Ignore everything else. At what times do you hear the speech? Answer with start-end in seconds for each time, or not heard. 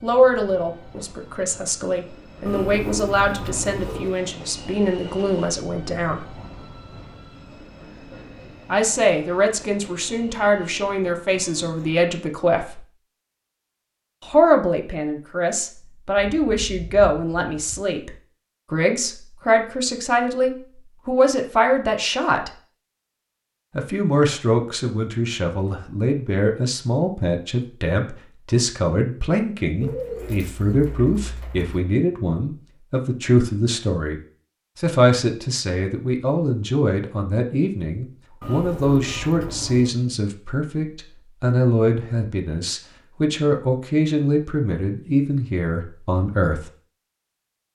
0.0-6.2, 8.7-12.8, 14.2-22.5, 23.8-46.7.